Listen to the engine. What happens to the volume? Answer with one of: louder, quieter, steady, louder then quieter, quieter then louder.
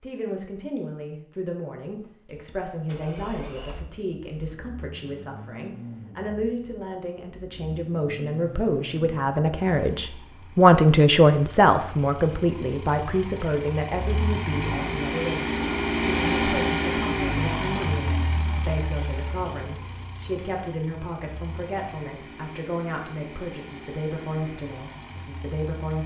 louder then quieter.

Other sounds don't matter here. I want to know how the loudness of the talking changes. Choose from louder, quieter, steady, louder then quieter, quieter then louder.
louder then quieter.